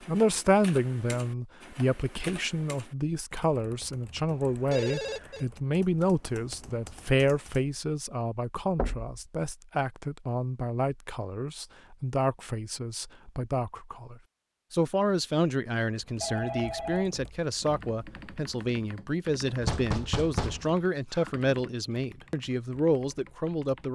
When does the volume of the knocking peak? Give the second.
20 s.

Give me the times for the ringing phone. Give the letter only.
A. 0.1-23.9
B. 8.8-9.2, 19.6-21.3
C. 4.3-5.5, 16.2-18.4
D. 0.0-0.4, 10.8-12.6
C.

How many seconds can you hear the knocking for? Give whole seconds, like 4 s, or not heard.
2 s.